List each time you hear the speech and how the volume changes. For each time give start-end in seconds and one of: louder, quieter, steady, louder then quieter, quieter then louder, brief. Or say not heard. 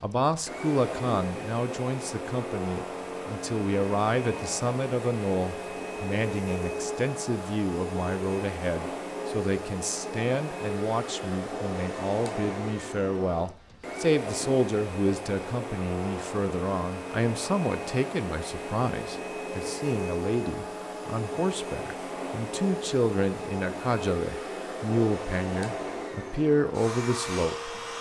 0.0-27.8 steady.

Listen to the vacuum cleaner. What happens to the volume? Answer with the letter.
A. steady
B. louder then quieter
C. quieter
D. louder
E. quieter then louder
A.